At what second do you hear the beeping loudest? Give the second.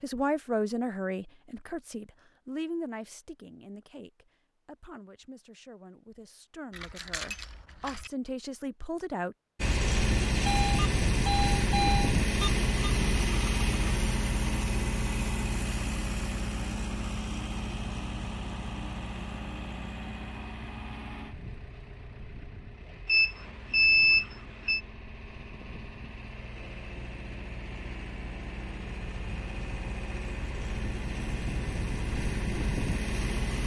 24 s.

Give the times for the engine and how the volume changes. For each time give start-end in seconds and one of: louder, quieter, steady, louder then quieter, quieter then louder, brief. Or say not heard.
9.6-33.6 quieter then louder.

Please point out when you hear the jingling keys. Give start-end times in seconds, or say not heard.
6.7-8.1.